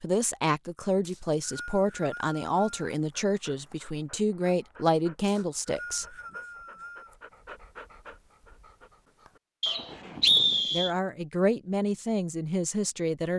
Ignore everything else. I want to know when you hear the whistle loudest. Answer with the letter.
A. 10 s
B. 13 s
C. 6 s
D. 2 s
A.